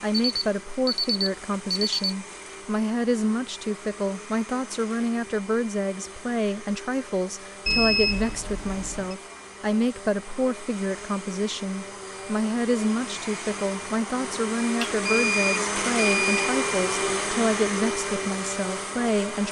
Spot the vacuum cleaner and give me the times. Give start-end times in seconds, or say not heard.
0.0-19.4.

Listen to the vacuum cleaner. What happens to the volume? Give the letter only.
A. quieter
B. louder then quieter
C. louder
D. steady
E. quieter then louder
C.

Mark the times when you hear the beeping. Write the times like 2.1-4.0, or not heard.
0.1-2.1, 7.7-9.2, 14.8-16.5.